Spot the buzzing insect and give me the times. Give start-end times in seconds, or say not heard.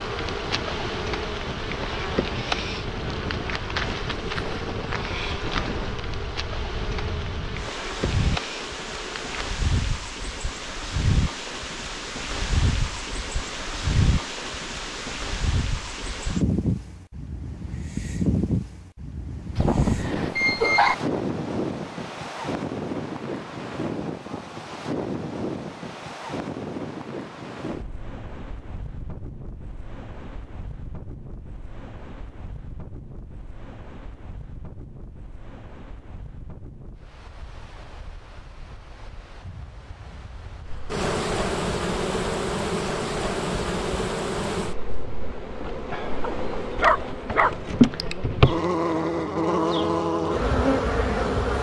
0.0-9.6, 40.6-51.5.